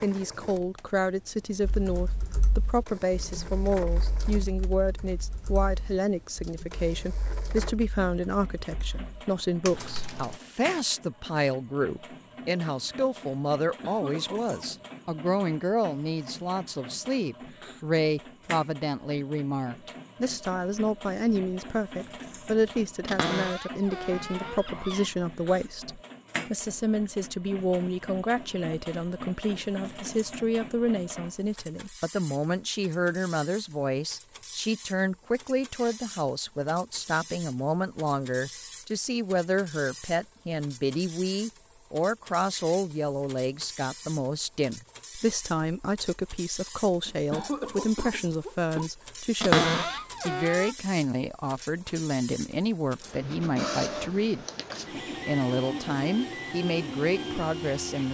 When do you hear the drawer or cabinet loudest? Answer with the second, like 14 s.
50 s.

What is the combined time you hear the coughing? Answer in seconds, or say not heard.
3 s.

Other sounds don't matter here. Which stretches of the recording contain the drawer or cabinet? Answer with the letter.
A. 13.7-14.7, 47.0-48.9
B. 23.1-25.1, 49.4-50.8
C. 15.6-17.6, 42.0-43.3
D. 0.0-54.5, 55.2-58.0
B.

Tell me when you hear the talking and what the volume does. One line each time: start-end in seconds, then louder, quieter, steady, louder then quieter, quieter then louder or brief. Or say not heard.
0.0-54.5 steady
55.2-58.0 brief.